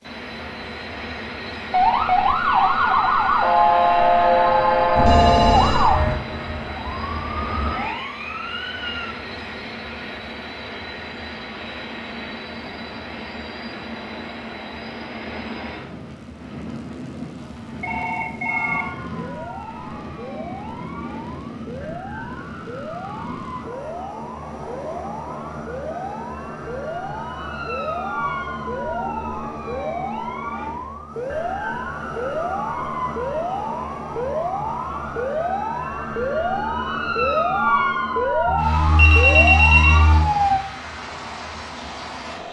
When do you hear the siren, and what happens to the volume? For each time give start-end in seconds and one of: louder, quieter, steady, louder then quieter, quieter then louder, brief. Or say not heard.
1.7-9.2 quieter
18.4-40.6 louder.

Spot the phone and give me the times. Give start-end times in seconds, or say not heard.
5.0-5.9, 17.4-18.9, 38.5-40.3.